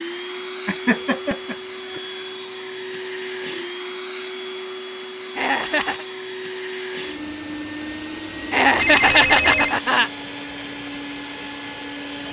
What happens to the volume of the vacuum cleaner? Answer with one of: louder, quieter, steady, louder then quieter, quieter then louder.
steady.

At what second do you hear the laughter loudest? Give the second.
9 s.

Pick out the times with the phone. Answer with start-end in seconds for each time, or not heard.
8.8-9.8.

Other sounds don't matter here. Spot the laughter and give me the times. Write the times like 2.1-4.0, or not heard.
0.7-2.0, 5.3-6.0, 8.5-10.1.